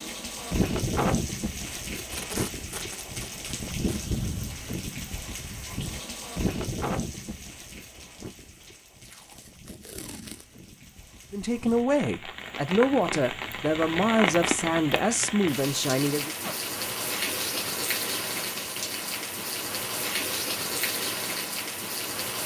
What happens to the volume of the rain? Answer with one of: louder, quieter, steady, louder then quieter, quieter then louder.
quieter then louder.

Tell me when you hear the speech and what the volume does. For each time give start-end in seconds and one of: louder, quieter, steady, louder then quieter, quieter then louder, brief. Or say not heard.
11.3-16.4 steady.